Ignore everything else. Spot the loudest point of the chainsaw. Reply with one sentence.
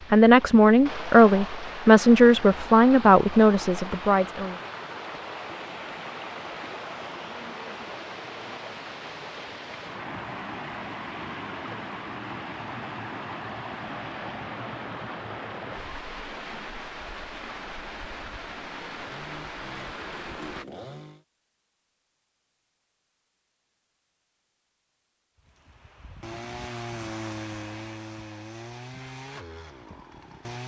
The volume of the chainsaw peaks at 27 seconds.